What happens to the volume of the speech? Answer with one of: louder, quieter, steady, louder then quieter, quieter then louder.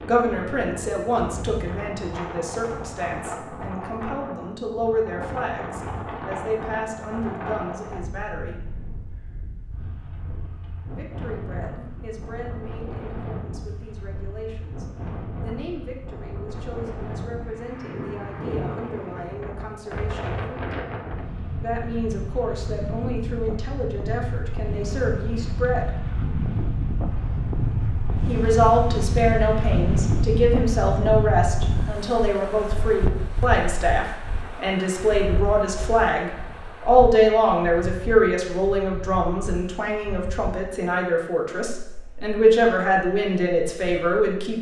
quieter then louder.